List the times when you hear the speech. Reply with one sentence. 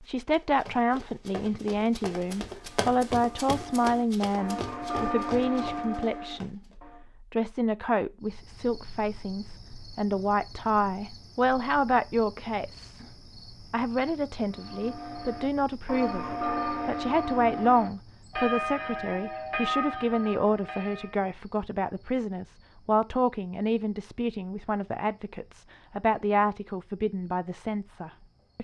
You can hear the speech from 0.0 to 13.1 s and from 13.7 to 28.5 s.